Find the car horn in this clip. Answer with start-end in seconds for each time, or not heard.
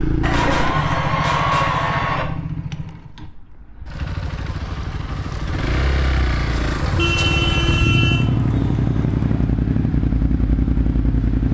0.3-1.9, 6.8-8.3.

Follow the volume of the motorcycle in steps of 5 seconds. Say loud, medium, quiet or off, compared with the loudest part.
medium, loud, loud.